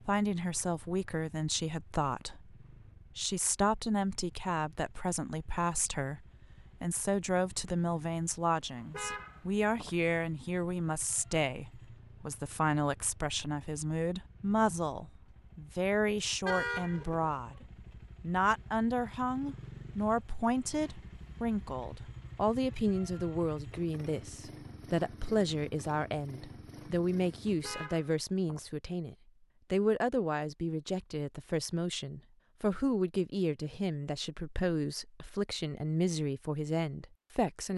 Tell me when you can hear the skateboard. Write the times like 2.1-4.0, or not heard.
not heard.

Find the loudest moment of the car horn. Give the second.
17 s.